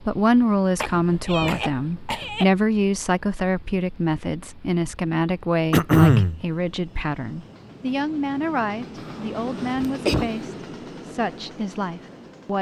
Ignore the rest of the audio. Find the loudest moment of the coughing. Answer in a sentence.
The loudest moment of the coughing is at 6 seconds.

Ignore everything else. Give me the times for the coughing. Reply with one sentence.
The coughing can be heard from 0.8 to 2.5 s, from 5.7 to 6.4 s and from 9.0 to 10.5 s.